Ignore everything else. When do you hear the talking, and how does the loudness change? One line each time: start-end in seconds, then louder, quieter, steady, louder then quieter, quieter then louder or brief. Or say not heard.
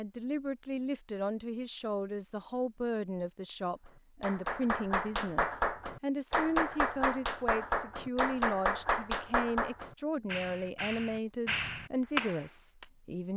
0.0-13.3 steady.